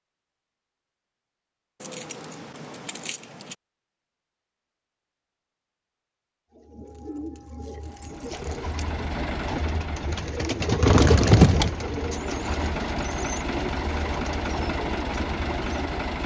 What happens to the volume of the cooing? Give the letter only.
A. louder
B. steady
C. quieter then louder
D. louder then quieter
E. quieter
D.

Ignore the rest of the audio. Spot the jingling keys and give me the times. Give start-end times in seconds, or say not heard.
1.8-3.5, 6.9-8.8, 10.8-11.8.